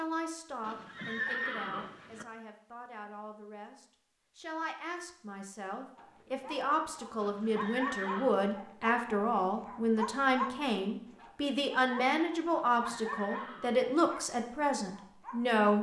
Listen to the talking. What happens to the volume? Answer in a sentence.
The loudness of the talking goes up.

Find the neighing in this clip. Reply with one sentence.
You can hear the neighing from 0.6 to 2.2 s, from 7.2 to 8.4 s and from 12.5 to 13.8 s.